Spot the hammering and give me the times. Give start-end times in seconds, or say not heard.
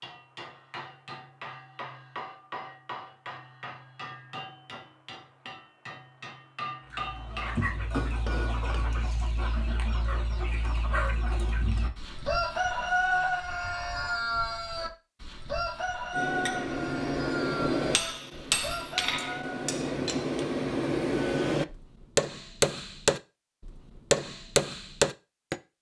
0.0-8.8, 16.1-25.6.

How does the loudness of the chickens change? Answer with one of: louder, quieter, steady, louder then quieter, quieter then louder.
louder then quieter.